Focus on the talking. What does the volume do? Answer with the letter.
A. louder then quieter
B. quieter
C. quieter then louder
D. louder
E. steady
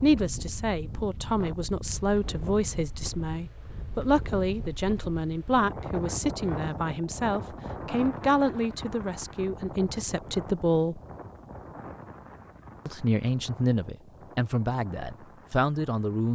E.